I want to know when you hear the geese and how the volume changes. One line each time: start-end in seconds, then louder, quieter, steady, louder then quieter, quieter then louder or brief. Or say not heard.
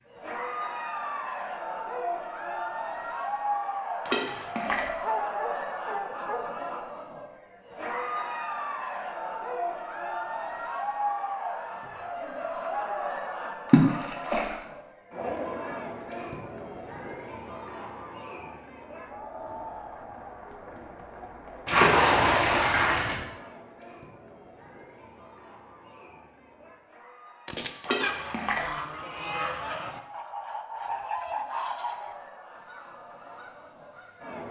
27.4-34.4 quieter.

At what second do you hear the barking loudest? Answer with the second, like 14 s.
5 s.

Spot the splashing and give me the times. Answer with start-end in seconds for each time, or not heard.
4.0-4.8, 13.7-14.6, 21.6-23.2, 27.8-28.6.